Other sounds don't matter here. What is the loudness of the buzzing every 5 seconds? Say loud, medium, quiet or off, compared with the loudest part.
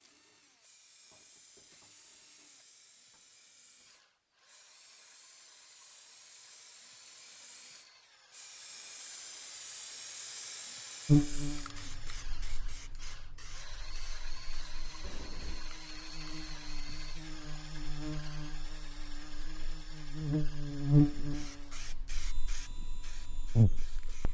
off, off, loud, quiet, loud.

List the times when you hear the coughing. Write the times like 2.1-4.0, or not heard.
15.0-15.7.